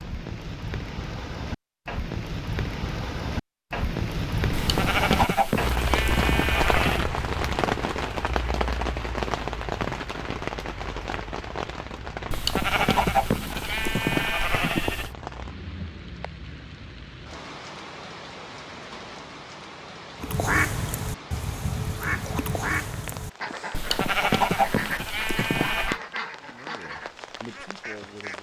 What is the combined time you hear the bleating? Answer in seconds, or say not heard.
8 s.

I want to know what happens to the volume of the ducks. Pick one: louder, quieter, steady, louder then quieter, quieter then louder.
quieter.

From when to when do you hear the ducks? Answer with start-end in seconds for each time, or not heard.
20.2-28.3.